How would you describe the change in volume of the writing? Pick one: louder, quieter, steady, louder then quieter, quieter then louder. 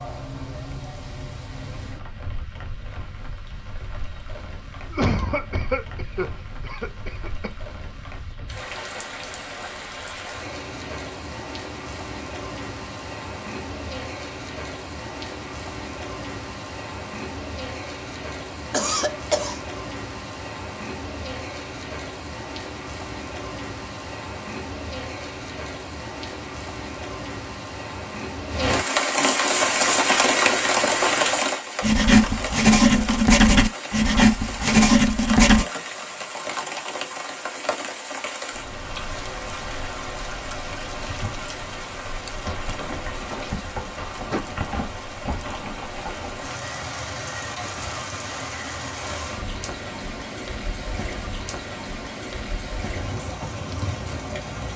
louder.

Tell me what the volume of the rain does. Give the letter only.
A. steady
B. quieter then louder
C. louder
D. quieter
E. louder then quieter
E.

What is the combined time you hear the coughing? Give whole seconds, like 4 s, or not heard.
6 s.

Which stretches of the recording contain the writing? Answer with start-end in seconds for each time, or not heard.
29.6-35.6.